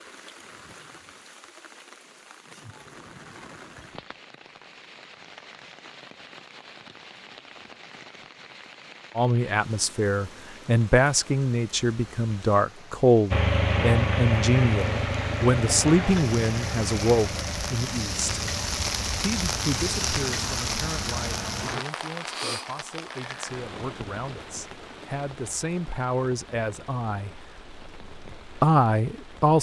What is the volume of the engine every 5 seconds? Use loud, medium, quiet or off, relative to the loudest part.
off, off, loud, medium, medium, off.